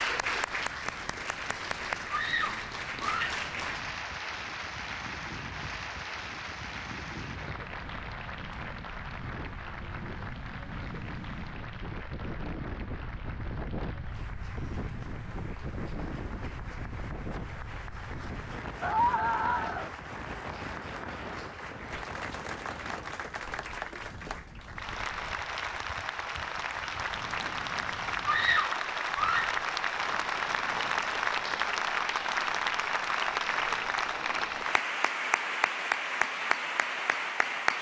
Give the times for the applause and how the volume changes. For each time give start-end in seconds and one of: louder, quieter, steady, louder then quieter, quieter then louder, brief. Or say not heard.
0.0-37.7 quieter then louder.